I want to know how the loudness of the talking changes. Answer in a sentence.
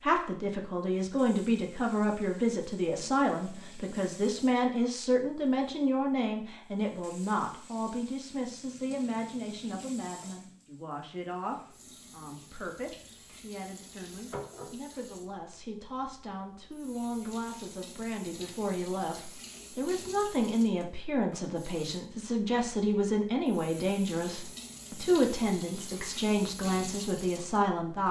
The loudness of the talking goes down, then up.